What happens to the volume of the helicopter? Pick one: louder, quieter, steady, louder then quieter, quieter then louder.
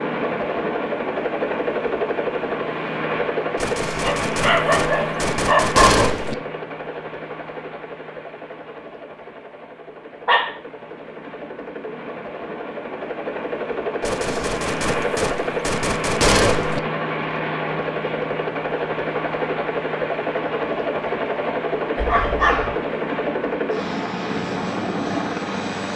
quieter then louder.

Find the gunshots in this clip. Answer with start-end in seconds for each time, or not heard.
3.5-6.3, 14.0-16.8.